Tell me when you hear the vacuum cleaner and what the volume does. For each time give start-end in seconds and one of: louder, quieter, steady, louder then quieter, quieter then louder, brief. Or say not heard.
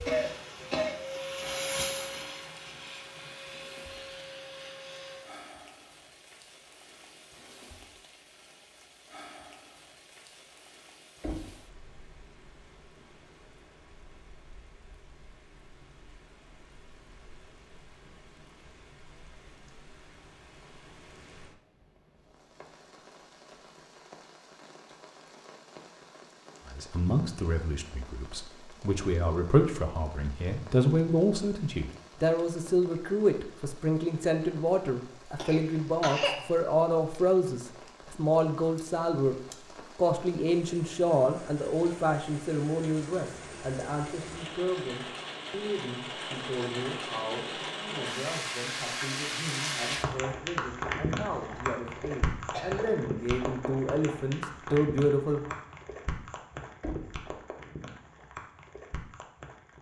0.0-5.2 louder then quieter.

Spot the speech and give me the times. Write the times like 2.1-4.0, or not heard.
26.6-39.4, 40.0-55.5.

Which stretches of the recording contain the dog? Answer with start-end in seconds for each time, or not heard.
not heard.